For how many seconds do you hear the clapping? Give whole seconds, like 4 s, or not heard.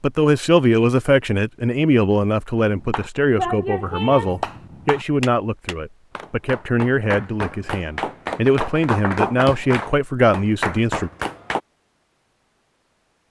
9 s.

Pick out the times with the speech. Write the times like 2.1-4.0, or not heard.
0.0-11.1.